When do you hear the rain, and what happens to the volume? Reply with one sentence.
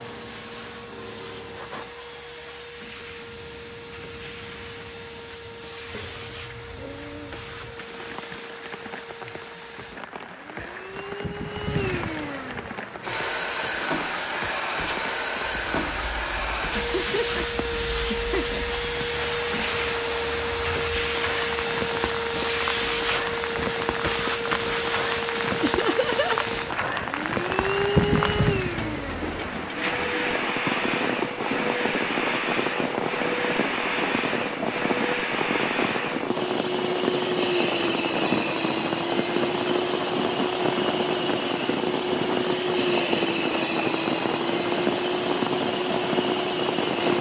The rain can be heard from 0.0 to 47.1 s, getting louder.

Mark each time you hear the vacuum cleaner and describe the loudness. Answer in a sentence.
You can hear the vacuum cleaner from 0.0 to 47.1 s, getting louder.